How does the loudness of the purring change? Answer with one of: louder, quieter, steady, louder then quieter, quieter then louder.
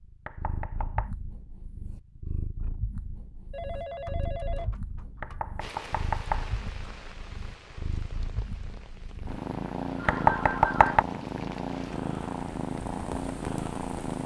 louder.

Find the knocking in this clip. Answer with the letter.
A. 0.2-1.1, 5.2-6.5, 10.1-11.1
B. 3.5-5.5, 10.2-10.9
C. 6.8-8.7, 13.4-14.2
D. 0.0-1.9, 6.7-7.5
A.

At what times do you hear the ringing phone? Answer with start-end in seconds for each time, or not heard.
3.5-5.5, 10.2-10.9.